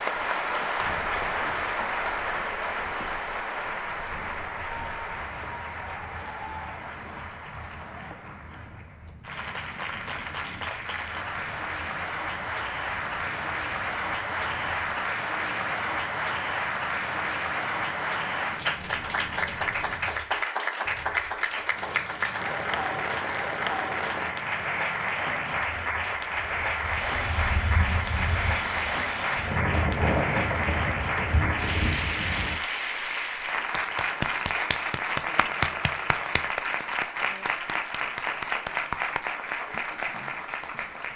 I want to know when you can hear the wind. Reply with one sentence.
You can hear the wind from 0.1 to 32.6 s.